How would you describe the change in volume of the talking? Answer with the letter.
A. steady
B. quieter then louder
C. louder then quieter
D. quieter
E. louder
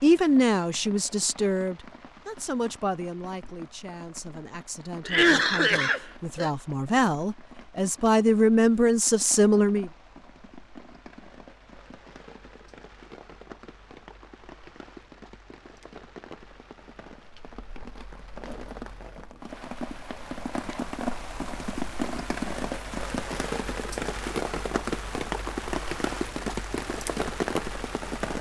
B.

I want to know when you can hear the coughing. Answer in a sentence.
The coughing can be heard from 5.0 to 6.5 s.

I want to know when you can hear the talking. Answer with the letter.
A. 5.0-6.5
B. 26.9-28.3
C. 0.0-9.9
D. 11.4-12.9
C.